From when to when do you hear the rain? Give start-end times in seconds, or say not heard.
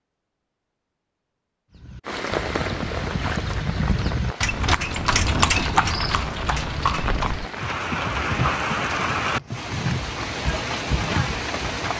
2.0-11.9.